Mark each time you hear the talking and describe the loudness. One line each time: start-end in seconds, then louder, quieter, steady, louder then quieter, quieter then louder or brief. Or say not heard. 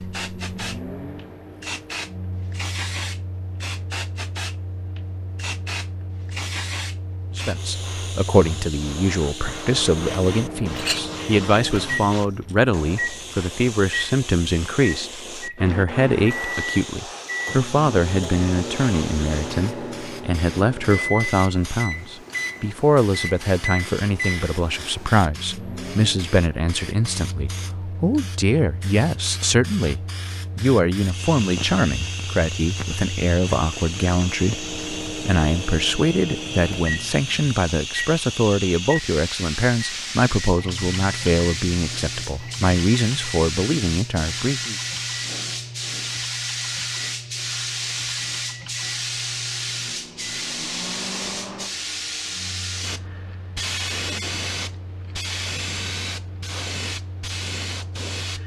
7.3-44.8 steady.